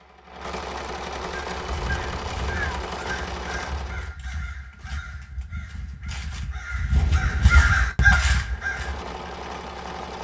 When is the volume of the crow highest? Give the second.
8 s.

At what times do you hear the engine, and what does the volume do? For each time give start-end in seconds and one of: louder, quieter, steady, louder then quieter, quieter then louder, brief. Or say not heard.
0.0-4.2 steady
8.3-10.1 brief.